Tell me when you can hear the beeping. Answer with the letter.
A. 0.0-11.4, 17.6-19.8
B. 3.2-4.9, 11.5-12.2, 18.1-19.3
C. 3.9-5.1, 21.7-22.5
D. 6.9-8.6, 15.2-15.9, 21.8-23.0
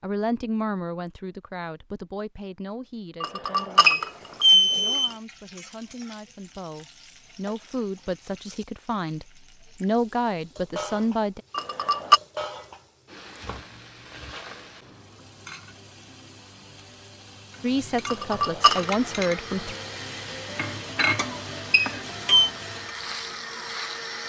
C.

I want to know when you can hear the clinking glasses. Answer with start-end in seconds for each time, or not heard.
3.2-4.9, 11.5-12.2, 18.1-19.3.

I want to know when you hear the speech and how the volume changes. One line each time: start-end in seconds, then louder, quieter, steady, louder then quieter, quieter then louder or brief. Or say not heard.
0.0-11.4 quieter then louder
17.6-19.8 brief.